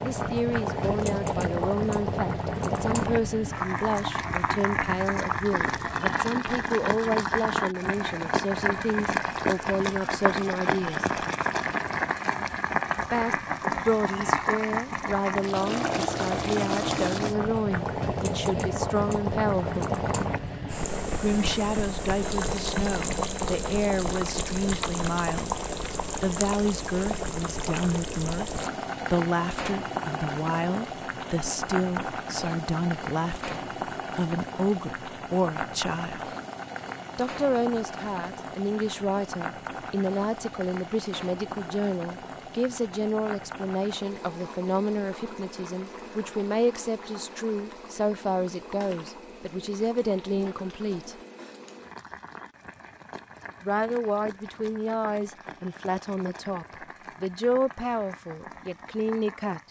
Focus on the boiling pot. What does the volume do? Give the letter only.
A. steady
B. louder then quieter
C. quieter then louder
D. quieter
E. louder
D.